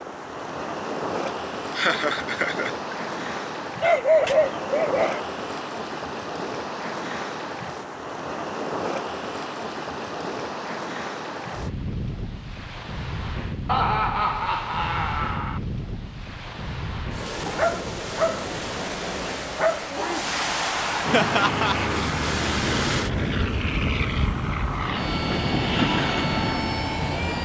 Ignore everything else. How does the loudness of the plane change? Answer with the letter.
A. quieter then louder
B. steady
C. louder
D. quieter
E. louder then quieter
B.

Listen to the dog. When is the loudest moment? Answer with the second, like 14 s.
4 s.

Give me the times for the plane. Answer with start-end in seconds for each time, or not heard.
21.1-27.4.